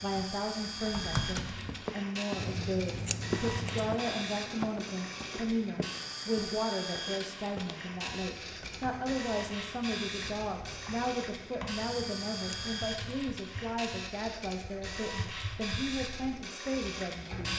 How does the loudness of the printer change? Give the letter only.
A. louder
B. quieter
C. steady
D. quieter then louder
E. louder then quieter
C.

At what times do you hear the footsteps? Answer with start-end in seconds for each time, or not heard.
1.6-8.0.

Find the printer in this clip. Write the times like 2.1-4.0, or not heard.
0.0-17.5.